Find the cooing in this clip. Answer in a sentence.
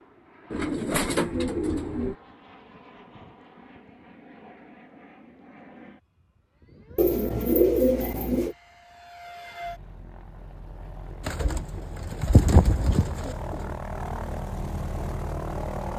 You can hear the cooing from 0.5 to 2.1 s, from 7.0 to 8.6 s and from 11.2 to 13.7 s.